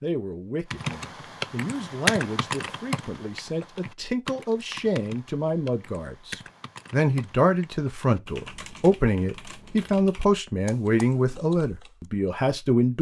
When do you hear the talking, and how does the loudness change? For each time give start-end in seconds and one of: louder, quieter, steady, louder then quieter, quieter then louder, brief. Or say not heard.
0.0-12.9 louder.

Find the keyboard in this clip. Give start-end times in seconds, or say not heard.
0.7-12.1.